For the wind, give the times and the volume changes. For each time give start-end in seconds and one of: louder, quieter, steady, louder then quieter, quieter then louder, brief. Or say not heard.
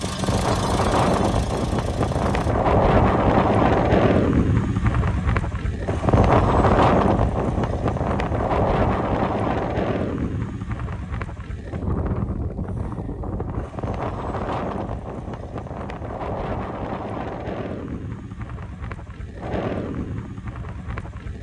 0.0-21.3 quieter.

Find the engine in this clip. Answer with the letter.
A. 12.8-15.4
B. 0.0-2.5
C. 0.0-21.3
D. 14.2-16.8
B.